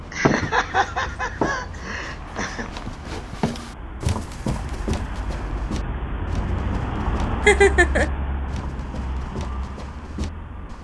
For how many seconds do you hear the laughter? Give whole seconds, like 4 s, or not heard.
3 s.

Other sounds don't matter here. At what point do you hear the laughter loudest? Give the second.
8 s.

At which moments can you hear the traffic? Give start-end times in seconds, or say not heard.
0.0-10.7.